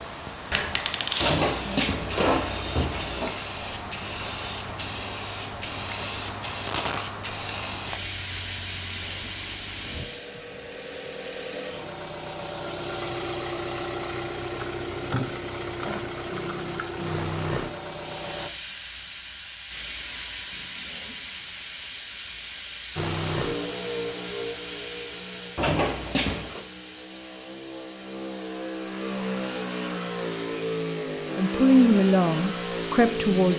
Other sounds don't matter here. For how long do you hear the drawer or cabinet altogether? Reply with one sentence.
The drawer or cabinet can be heard for 3 seconds in total.